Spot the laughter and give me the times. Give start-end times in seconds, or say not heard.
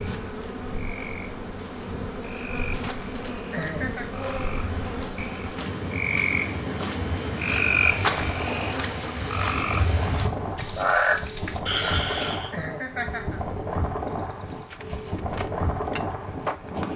3.4-4.0, 12.3-13.4.